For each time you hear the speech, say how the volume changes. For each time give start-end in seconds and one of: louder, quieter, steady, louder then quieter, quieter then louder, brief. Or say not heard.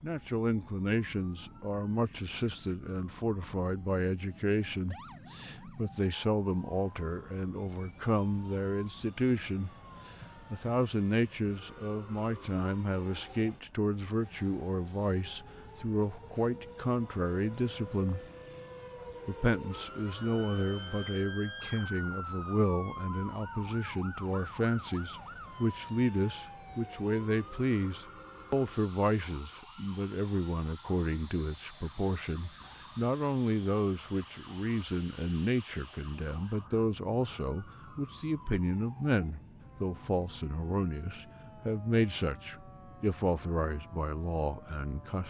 0.0-9.7 steady
10.5-18.2 steady
19.2-45.2 steady.